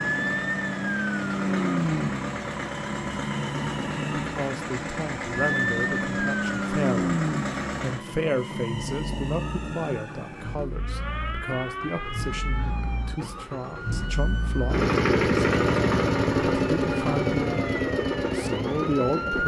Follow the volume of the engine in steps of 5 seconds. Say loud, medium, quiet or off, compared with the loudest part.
medium, medium, medium, loud.